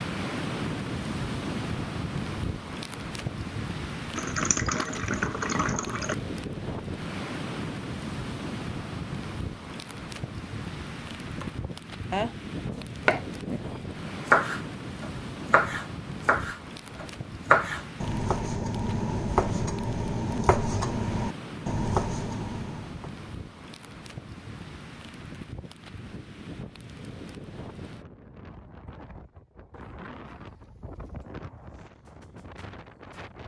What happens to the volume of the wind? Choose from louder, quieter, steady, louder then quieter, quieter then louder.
quieter.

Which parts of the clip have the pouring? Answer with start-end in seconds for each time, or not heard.
4.2-6.2.